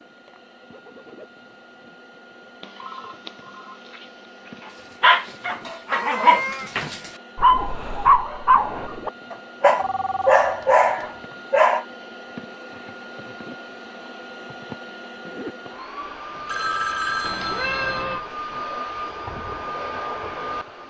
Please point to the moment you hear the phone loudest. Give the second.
17 s.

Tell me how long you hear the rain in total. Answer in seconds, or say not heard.
not heard.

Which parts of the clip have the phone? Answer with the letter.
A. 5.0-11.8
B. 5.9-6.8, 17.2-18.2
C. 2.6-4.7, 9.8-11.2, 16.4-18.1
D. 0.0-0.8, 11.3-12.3
C.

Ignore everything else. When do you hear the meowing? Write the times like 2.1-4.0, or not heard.
5.9-6.8, 17.2-18.2.